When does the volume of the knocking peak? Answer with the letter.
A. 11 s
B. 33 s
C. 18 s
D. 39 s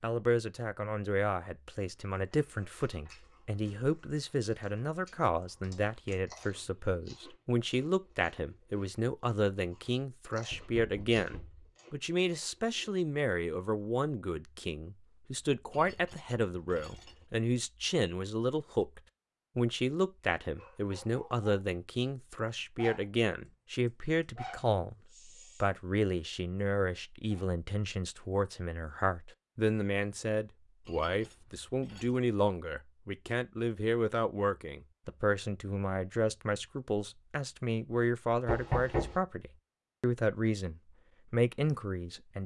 D.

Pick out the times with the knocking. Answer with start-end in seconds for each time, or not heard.
10.5-11.7, 38.5-39.2.